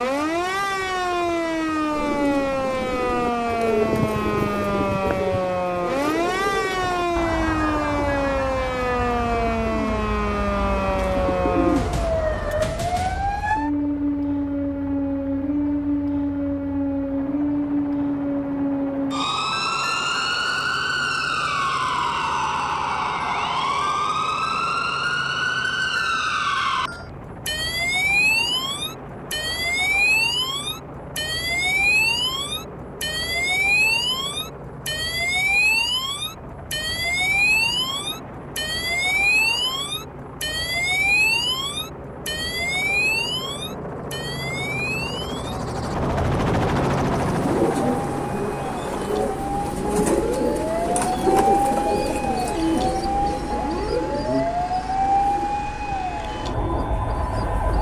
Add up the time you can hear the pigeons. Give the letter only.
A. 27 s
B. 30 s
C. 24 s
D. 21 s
D.